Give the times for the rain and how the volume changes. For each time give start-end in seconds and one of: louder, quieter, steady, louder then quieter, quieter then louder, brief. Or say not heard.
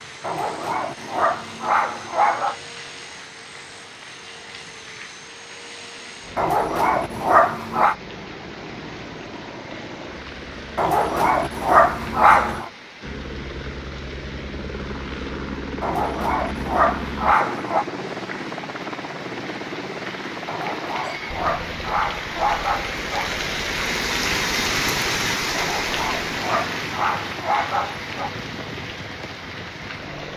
0.0-30.3 louder.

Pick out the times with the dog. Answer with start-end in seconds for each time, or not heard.
0.2-2.5, 6.3-8.0, 10.8-12.7, 15.8-17.9, 20.4-23.3, 25.6-28.3.